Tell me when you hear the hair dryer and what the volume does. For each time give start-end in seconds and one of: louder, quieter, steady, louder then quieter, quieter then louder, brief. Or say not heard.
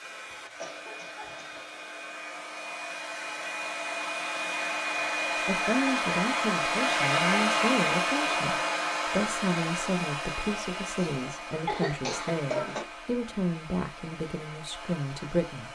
0.0-15.6 louder then quieter.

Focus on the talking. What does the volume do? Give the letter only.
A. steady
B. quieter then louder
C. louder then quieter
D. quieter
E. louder
A.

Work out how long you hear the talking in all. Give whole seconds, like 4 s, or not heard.
10 s.